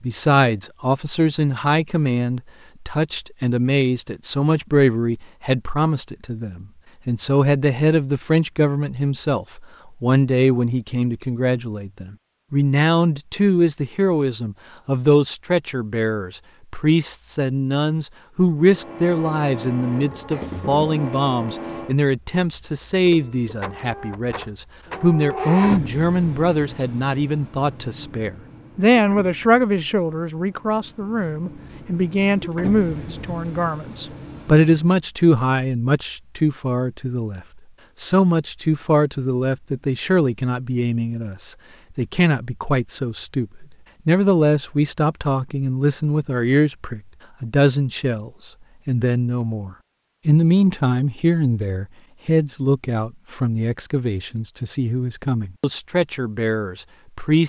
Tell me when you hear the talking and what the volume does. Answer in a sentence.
The talking can be heard from 0.0 to 57.4 s, at a steady volume.